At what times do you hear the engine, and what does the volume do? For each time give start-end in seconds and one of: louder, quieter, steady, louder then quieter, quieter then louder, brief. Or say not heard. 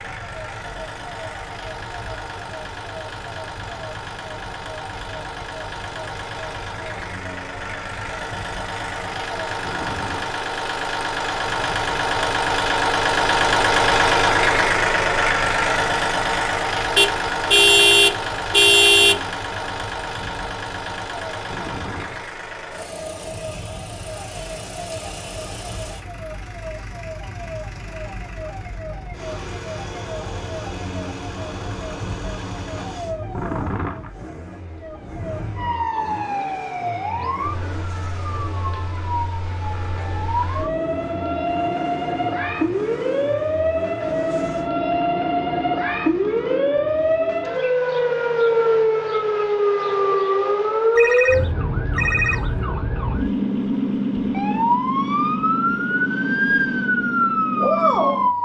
0.0-44.7 louder then quieter.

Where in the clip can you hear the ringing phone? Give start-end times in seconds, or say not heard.
51.0-52.6.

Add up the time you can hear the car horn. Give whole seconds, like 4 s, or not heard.
2 s.